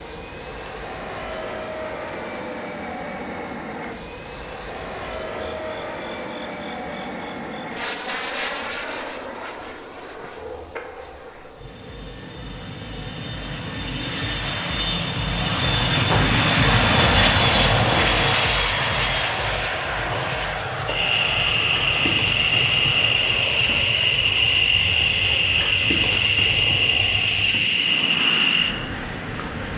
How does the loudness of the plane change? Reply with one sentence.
The volume of the plane goes up, then down.